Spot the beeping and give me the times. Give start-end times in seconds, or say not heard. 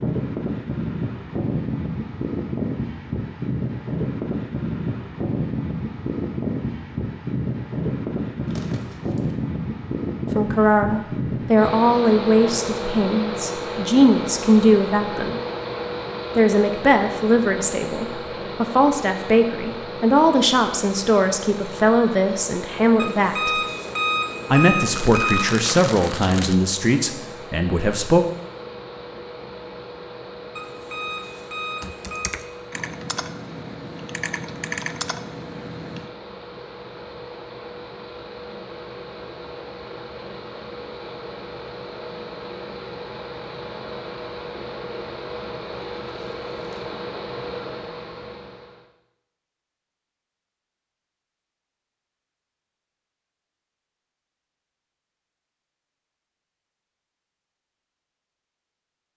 22.9-25.6, 30.6-32.4.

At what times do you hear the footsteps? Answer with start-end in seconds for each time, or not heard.
not heard.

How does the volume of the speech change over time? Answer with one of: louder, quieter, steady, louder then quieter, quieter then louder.
steady.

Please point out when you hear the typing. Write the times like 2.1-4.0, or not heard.
31.8-36.1.